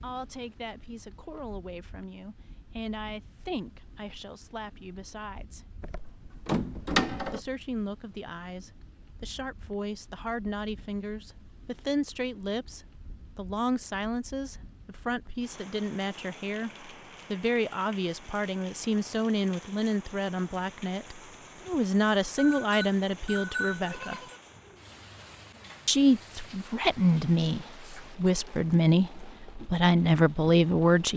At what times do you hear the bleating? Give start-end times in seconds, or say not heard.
22.4-24.4.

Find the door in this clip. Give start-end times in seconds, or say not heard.
5.8-7.4.